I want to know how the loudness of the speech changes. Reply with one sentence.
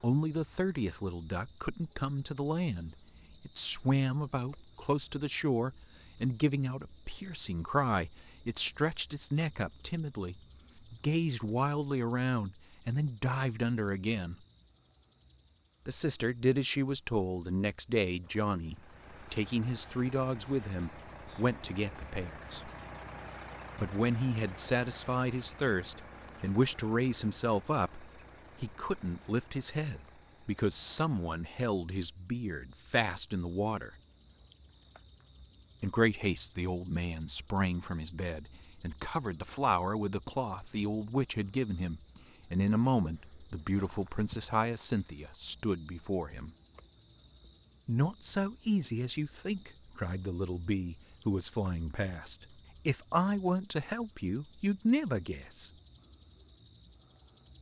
The volume of the speech stays about the same.